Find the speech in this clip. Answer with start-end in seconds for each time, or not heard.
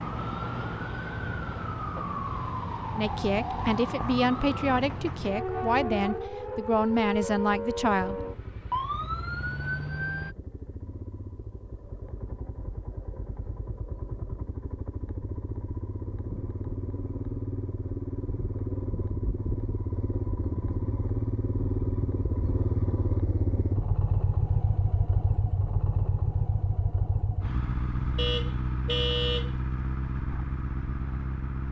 3.0-8.2.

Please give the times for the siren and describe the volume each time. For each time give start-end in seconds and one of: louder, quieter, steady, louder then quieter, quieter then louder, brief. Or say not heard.
0.0-10.3 steady.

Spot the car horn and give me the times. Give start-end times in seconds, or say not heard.
28.1-29.5.